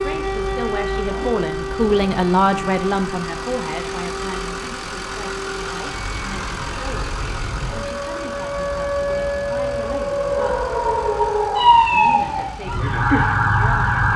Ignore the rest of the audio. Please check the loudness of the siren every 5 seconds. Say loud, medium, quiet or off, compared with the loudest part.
medium, medium, loud.